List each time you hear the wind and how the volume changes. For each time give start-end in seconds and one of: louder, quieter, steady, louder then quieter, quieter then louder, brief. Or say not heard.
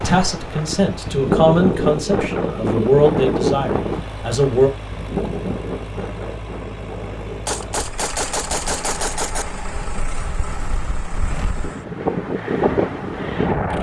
0.0-13.7 quieter then louder.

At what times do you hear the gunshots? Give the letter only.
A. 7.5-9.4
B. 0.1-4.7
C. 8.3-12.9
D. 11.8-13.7
A.